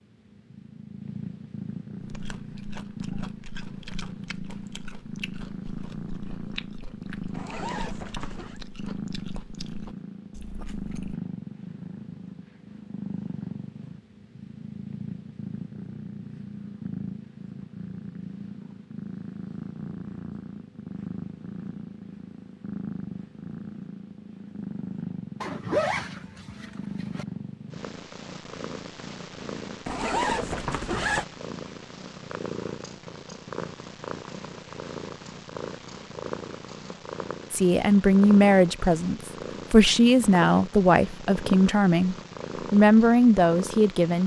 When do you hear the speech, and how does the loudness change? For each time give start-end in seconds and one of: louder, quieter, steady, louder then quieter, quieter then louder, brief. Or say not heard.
37.5-44.2 steady.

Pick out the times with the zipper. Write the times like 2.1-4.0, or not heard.
7.3-8.6, 25.4-27.2, 29.9-31.2.